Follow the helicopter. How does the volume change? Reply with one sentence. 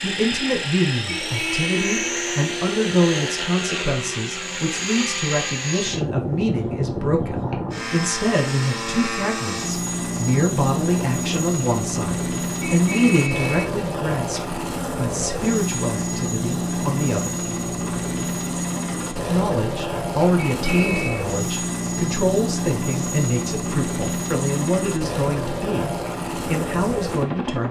The volume of the helicopter stays about the same.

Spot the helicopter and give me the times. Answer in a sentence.
You can hear the helicopter from 0.0 to 27.6 s.